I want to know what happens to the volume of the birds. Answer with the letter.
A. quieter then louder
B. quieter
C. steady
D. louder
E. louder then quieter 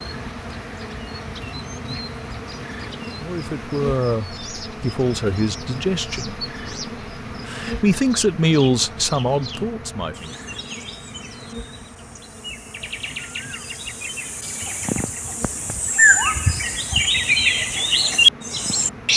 D.